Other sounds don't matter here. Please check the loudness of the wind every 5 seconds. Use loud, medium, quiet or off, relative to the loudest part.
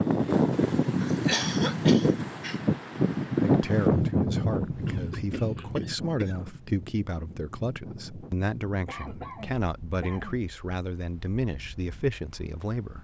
loud, quiet, quiet.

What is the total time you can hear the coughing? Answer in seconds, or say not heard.
5 s.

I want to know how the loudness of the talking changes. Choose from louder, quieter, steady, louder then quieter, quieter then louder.
steady.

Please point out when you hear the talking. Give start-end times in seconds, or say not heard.
3.4-12.9.